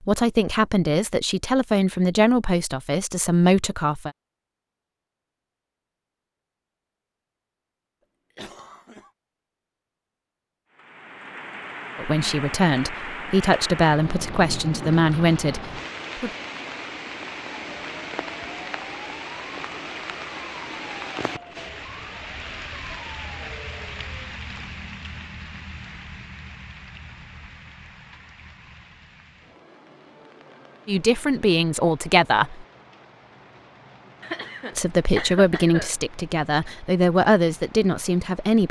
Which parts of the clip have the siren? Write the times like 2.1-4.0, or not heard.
17.6-24.4.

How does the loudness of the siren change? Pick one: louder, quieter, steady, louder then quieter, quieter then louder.
steady.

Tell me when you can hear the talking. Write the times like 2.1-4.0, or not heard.
0.0-4.1, 11.9-16.3, 30.9-32.6, 34.8-38.6.